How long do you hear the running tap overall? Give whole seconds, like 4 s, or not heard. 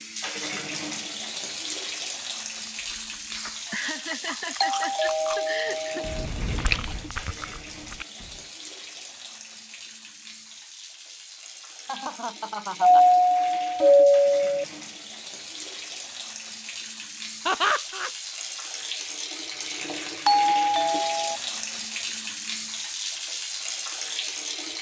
25 s.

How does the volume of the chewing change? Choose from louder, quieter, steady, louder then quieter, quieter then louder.
louder then quieter.